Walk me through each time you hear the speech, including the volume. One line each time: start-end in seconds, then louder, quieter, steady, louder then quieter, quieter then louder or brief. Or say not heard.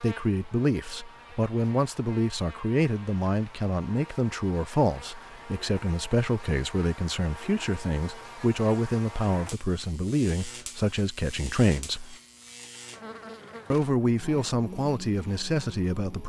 0.0-12.2 steady
13.7-16.2 brief.